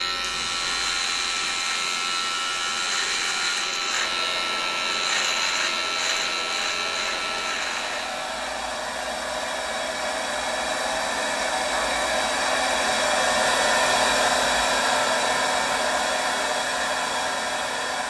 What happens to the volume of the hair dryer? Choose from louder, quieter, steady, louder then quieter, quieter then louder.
louder.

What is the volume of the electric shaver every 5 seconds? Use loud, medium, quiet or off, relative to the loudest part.
loud, loud, off, off.